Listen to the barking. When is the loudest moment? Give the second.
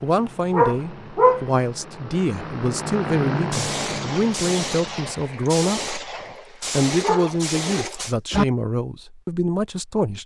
1 s.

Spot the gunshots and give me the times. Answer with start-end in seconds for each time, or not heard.
3.5-8.2.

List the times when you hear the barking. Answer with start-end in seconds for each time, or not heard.
0.5-1.4, 7.0-8.4.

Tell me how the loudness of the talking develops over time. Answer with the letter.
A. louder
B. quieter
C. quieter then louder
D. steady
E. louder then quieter
D.